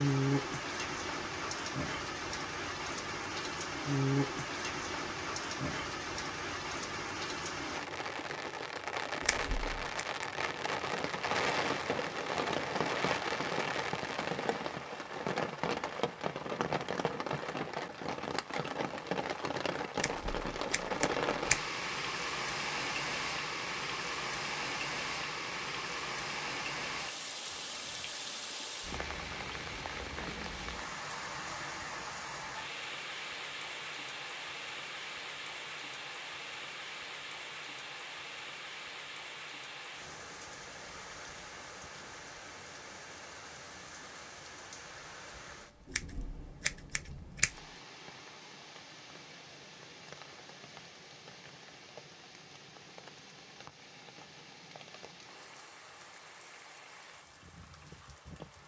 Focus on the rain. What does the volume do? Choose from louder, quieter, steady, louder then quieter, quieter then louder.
quieter.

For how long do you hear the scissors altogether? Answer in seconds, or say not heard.
4 s.